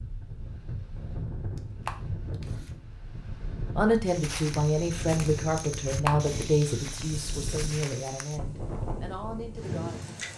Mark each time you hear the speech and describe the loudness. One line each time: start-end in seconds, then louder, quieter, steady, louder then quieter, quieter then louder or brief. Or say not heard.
3.8-10.2 quieter.